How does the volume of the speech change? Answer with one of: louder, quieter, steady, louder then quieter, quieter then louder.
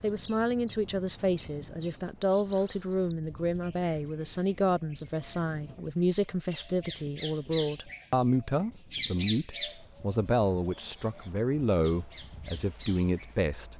steady.